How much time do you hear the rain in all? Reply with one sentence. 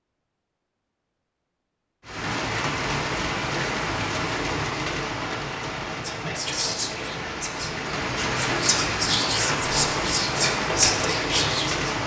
You can hear the rain for 10 seconds altogether.